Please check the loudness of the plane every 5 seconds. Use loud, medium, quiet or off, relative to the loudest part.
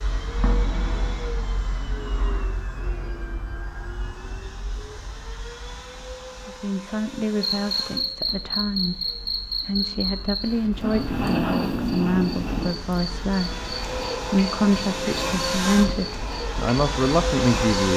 medium, quiet, medium, loud.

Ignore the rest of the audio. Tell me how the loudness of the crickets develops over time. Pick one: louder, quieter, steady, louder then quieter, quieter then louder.
quieter.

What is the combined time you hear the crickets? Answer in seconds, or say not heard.
10 s.